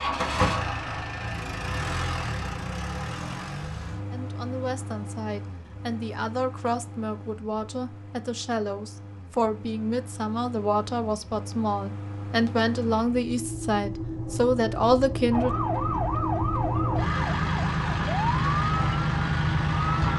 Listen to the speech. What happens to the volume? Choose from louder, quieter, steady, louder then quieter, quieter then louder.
louder.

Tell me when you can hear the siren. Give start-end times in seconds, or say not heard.
15.3-20.1.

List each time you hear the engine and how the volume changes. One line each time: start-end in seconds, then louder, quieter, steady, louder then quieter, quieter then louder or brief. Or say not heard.
0.0-20.1 quieter then louder.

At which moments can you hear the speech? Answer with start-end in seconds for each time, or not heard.
4.1-15.5.